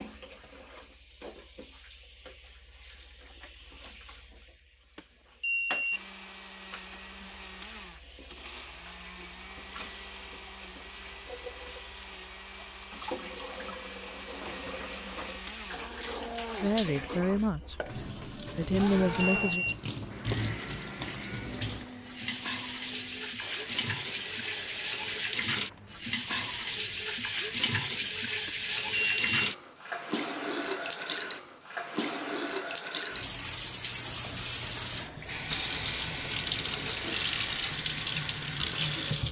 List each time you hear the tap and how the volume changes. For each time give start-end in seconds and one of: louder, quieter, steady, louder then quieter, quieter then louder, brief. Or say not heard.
0.0-39.2 louder.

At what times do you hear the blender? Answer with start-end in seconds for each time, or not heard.
5.9-25.2.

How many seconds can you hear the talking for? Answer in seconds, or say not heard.
3 s.